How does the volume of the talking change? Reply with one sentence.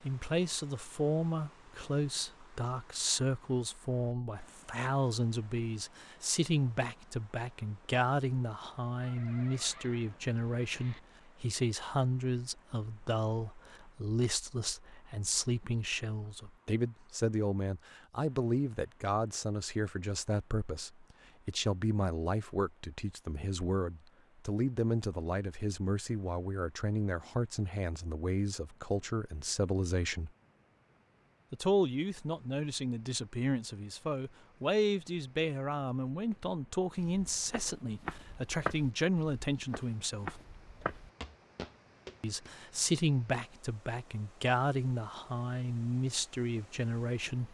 The volume of the talking stays about the same.